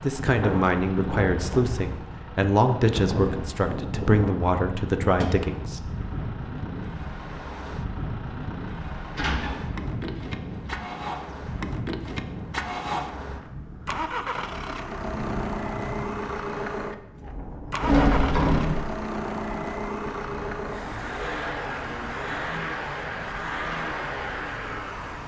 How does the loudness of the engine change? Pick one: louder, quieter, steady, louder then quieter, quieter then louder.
louder.